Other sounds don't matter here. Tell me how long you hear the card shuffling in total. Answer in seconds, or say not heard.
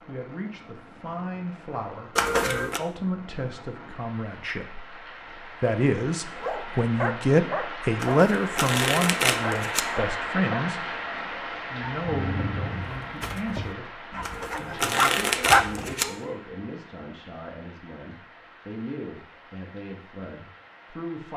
4 s.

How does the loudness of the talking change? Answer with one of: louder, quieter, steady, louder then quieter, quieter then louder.
louder then quieter.